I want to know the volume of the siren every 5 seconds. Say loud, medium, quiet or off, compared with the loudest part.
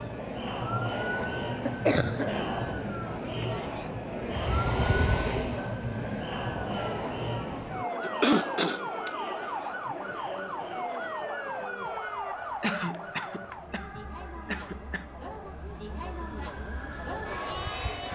loud, loud, loud, medium.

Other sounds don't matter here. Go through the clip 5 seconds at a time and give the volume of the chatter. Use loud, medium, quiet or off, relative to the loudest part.
loud, loud, medium, loud.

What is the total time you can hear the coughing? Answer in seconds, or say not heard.
5 s.